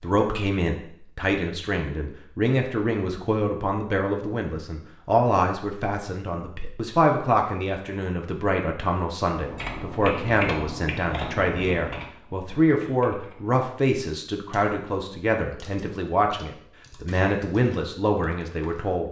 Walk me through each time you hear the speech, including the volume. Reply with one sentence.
The speech can be heard from 0.0 to 19.0 s, at a steady volume.